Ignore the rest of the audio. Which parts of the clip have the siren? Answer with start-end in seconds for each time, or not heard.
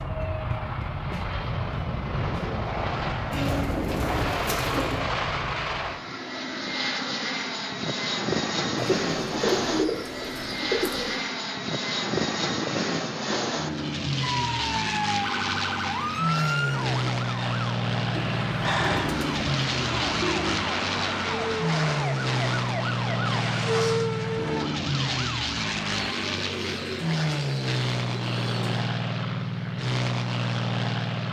14.2-26.1.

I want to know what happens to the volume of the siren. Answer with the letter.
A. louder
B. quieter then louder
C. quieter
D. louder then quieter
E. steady
E.